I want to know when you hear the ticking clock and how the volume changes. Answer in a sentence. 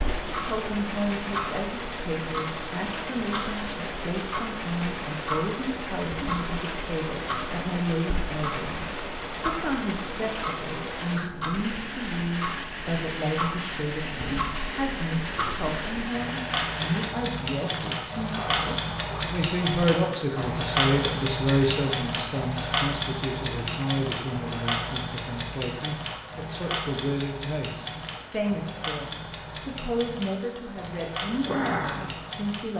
You can hear the ticking clock from 0.0 to 32.6 s, getting louder then quieter.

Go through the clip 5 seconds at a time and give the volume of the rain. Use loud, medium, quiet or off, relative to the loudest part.
loud, loud, loud, loud, medium, medium, loud.